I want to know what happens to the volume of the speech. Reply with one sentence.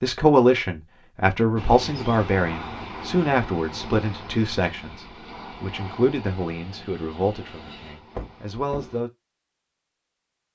The volume of the speech goes down.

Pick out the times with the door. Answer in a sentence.
You can hear the door from 8.2 to 9.0 s.